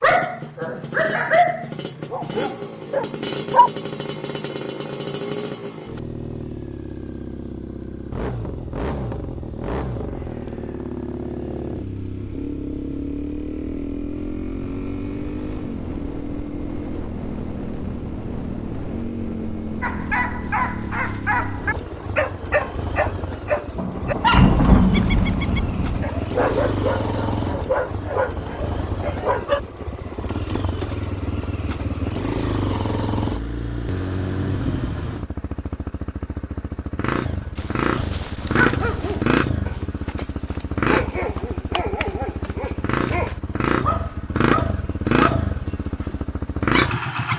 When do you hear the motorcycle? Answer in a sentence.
The motorcycle can be heard from 0.0 to 47.3 s.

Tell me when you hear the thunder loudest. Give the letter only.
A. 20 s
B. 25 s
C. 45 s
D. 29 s
B.